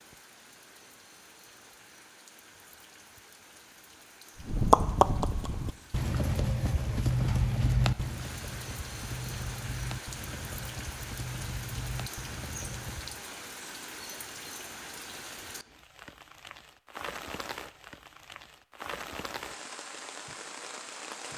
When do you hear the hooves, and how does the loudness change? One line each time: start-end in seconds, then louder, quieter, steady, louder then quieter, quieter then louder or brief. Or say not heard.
4.3-13.2 quieter.